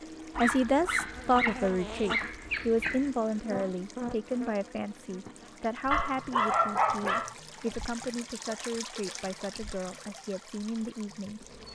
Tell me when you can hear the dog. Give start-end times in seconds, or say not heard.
0.3-3.1, 5.9-7.3.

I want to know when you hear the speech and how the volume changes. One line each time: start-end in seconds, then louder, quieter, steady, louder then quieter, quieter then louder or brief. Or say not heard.
0.3-11.4 quieter.